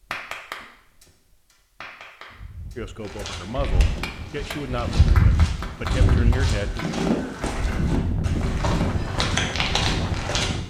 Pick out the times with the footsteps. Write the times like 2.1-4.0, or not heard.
3.0-10.5.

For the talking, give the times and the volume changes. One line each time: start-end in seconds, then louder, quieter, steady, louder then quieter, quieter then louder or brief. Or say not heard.
2.8-6.8 quieter then louder.